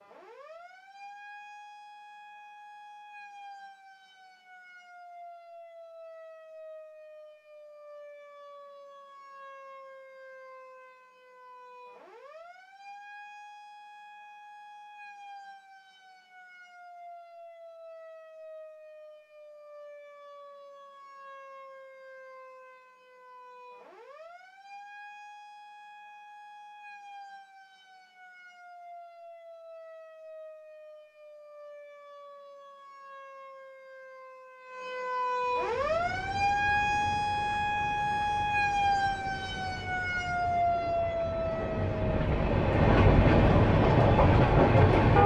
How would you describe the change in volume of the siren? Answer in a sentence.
The loudness of the siren goes up.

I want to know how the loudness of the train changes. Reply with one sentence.
The volume of the train goes up.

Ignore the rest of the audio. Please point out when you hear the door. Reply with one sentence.
The door can't be heard in this clip.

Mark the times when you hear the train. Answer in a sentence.
The train can be heard from 35.4 to 45.2 s.